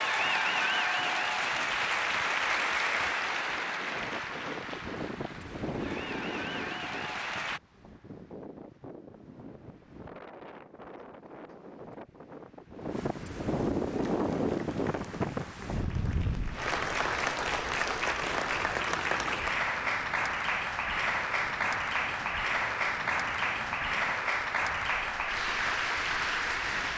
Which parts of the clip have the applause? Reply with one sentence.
The applause can be heard from 0.0 to 7.6 s and from 13.8 to 26.9 s.